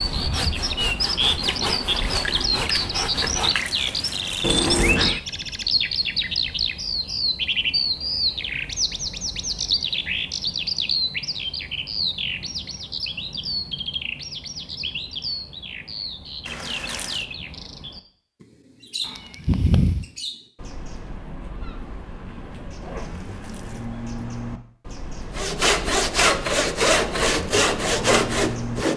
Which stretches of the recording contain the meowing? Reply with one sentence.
You can hear the meowing from 4.4 to 5.2 s and from 19.1 to 20.1 s.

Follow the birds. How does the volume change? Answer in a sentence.
The loudness of the birds goes down.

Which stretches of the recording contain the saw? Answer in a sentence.
The saw can be heard from 0.0 to 3.9 s and from 25.4 to 28.9 s.